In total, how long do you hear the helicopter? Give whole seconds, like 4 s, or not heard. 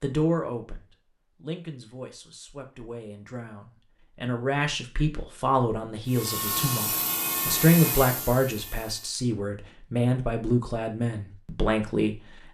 3 s.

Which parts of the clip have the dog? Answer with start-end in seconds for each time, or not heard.
not heard.